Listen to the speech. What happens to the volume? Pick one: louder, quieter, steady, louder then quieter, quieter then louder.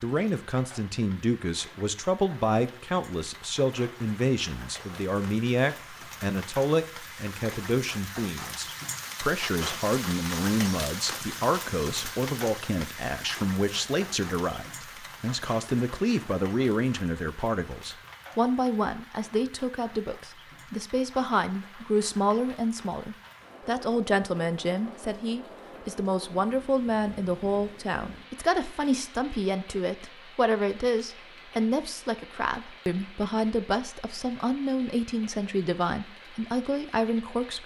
steady.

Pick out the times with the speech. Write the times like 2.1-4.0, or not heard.
0.0-37.6.